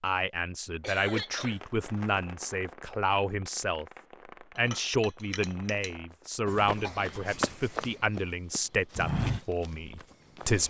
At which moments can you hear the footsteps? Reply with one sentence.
The footsteps can be heard from 6.5 to 10.6 s.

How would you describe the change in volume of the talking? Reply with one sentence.
The loudness of the talking stays about the same.